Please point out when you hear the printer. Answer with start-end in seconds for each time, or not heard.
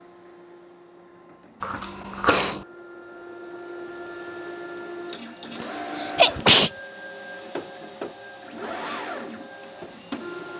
0.0-10.5.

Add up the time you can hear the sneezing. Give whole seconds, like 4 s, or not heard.
2 s.